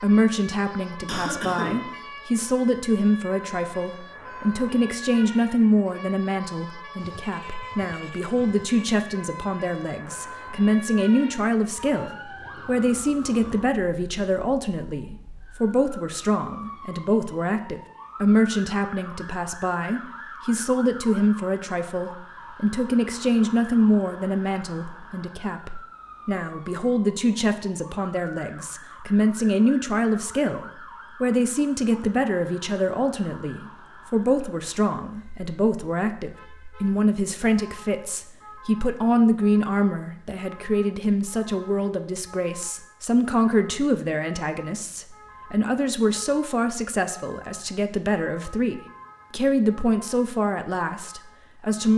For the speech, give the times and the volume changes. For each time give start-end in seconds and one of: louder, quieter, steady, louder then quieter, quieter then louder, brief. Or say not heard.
0.0-51.9 steady.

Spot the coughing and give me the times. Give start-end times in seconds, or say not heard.
1.1-1.9.